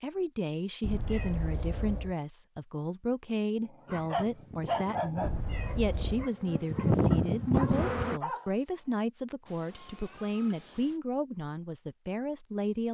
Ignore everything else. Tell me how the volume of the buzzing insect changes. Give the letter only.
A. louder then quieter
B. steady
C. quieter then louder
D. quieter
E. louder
E.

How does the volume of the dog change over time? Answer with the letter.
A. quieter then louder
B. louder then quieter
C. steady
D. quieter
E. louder
A.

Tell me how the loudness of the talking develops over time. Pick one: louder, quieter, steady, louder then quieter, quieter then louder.
steady.